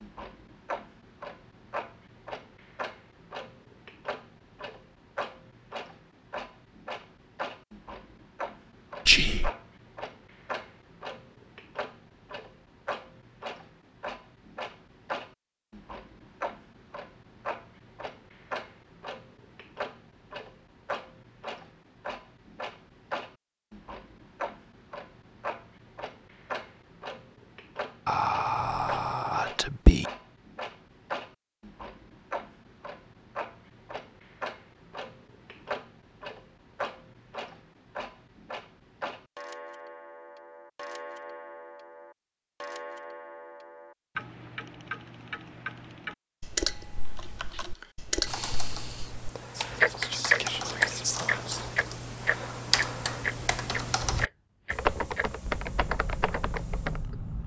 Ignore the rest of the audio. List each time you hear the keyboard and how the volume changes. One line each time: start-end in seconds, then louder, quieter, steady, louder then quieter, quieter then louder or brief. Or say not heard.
47.0-57.0 louder.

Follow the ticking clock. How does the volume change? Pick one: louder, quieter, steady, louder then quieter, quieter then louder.
louder.